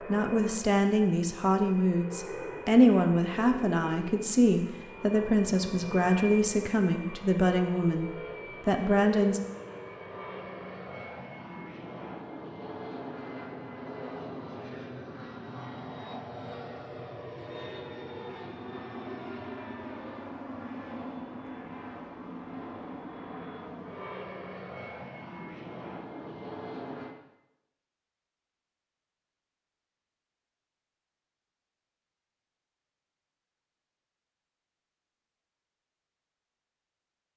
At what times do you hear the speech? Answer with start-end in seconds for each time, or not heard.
0.1-9.4.